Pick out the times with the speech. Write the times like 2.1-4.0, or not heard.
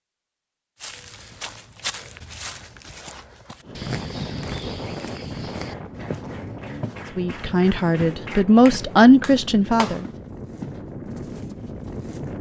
7.2-10.1.